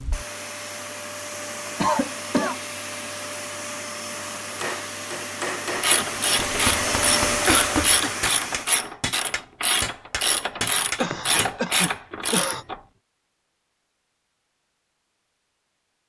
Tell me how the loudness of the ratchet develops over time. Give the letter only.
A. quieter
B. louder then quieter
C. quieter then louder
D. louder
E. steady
E.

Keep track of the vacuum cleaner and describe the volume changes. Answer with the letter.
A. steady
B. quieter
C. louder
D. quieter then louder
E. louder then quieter
C.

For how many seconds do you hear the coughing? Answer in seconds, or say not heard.
3 s.